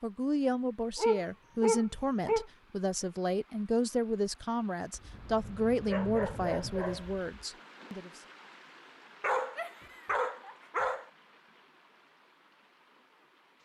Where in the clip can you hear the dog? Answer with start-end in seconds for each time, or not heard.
0.9-2.5, 5.0-7.3, 9.2-11.1.